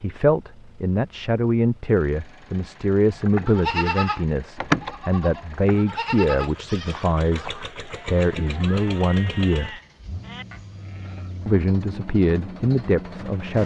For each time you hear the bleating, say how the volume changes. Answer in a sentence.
The bleating can be heard from 3.1 to 11.6 s, getting quieter.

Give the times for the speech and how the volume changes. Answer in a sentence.
The speech can be heard from 0.0 to 9.8 s, at a steady volume; and briefly from 11.4 to 13.6 s.